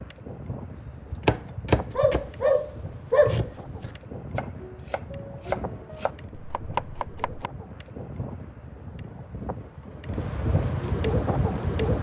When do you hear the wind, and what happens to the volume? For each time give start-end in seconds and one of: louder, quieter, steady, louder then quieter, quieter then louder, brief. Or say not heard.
0.0-11.9 louder.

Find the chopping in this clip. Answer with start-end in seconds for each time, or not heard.
0.8-2.4, 3.2-7.5.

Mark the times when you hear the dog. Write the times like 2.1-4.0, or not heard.
1.9-3.5.